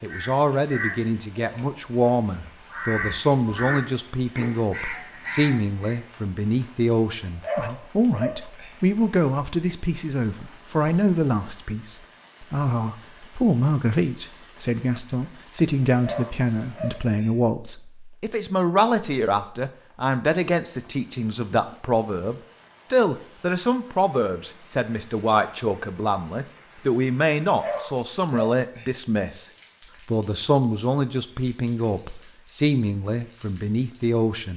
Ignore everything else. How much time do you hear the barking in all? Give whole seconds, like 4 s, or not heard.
4 s.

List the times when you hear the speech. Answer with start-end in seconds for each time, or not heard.
0.0-29.4, 30.1-34.5.